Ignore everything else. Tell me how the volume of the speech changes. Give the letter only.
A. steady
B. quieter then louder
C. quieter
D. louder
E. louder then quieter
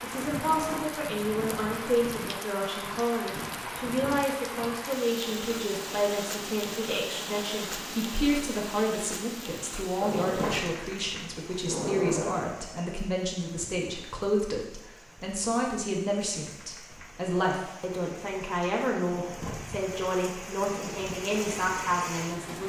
A.